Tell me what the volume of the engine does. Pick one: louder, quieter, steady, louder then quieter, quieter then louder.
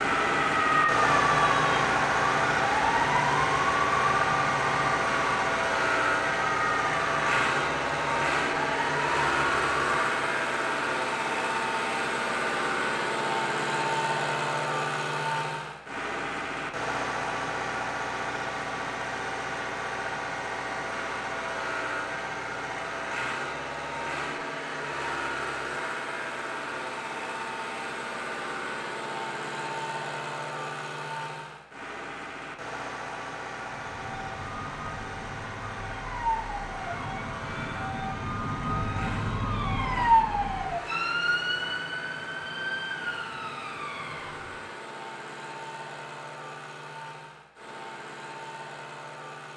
quieter.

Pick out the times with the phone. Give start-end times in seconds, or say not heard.
not heard.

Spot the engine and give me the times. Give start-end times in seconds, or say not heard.
0.0-49.5.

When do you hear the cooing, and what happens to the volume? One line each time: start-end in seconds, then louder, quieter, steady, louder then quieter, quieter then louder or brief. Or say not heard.
not heard.